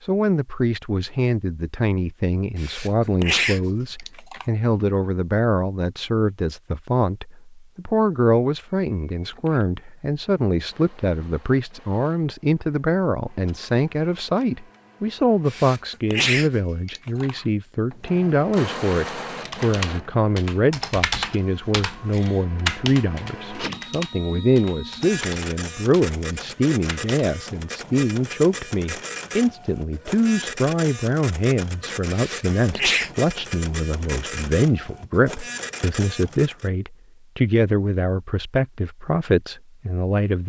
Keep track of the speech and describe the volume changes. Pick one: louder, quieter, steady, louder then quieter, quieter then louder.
steady.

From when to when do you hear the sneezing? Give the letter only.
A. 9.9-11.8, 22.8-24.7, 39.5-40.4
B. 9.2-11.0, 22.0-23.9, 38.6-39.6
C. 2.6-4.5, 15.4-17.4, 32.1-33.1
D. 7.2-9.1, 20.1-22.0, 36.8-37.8
C.